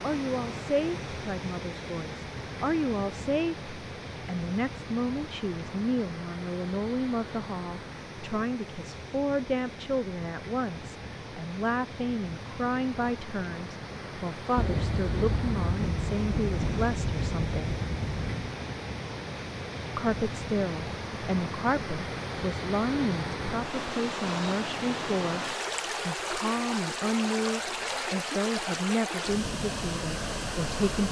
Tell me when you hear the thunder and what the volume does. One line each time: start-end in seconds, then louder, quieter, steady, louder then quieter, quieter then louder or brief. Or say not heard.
14.6-18.6 steady.